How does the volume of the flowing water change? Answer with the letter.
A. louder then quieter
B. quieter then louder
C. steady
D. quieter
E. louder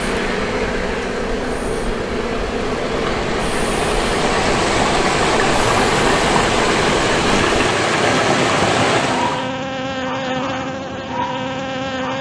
E.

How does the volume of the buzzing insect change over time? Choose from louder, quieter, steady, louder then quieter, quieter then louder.
steady.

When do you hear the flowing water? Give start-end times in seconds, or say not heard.
0.0-9.5.